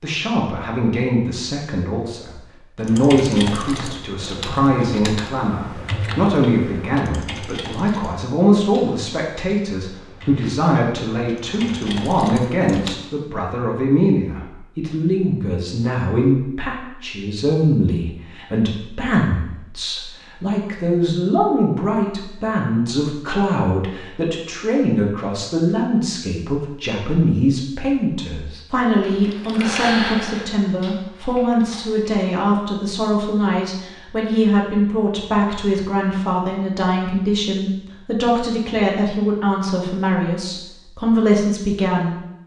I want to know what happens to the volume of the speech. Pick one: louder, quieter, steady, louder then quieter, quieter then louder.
steady.